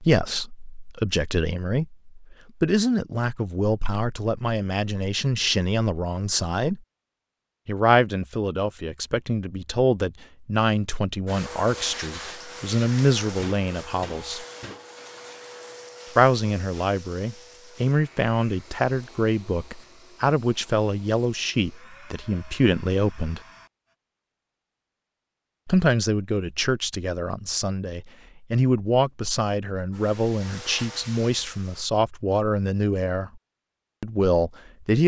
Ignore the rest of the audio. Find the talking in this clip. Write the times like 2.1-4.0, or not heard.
0.0-6.8, 7.7-14.4, 16.1-23.4, 25.6-33.4, 34.0-35.0.